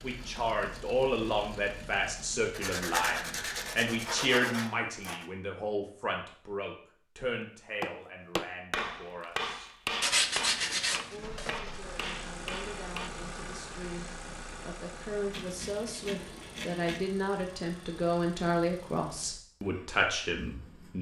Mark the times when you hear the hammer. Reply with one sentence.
The hammer can be heard from 7.4 to 13.1 s.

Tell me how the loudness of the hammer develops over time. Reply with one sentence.
The loudness of the hammer goes down.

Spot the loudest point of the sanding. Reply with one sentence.
The volume of the sanding peaks at 10 seconds.